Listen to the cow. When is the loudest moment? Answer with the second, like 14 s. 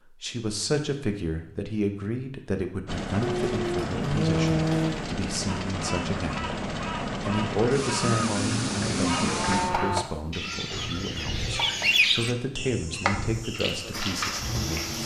4 s.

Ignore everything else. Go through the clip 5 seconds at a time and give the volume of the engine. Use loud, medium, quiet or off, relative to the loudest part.
loud, loud, medium.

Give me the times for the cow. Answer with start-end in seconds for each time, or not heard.
3.2-5.1, 8.0-10.1.